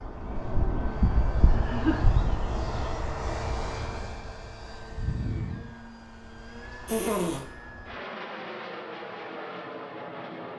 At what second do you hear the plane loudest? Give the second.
2 s.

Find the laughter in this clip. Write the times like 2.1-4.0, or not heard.
1.5-2.1, 6.8-7.5.